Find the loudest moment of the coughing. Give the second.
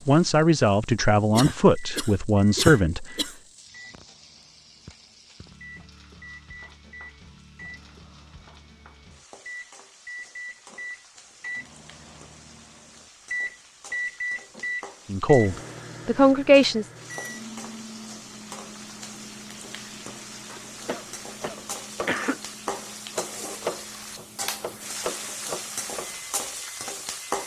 3 s.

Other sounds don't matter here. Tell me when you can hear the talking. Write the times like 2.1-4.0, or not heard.
0.1-3.0, 15.1-16.9.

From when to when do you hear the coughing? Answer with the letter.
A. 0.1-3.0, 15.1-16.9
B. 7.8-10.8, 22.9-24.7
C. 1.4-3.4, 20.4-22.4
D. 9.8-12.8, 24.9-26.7
C.